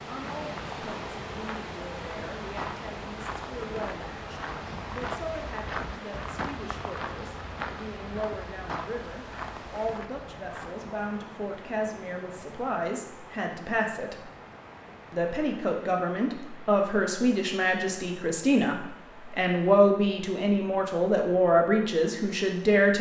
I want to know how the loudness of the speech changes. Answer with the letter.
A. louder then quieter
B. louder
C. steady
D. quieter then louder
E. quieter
B.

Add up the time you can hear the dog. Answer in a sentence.
You can't hear the dog here.